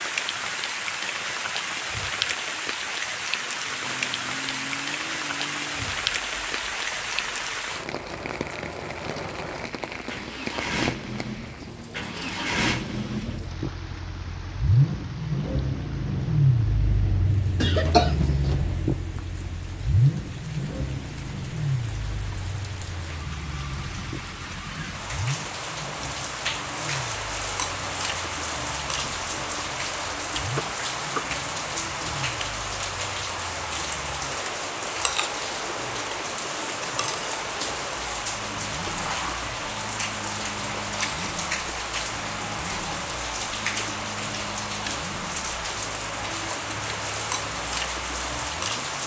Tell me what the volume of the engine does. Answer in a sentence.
The volume of the engine goes up, then down.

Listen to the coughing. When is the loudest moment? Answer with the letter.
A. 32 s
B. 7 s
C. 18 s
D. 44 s
C.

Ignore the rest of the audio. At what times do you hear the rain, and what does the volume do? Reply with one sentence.
You can hear the rain from 0.0 to 49.0 s, getting quieter then louder.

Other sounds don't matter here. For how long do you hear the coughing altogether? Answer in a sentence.
You can hear the coughing for 2 seconds altogether.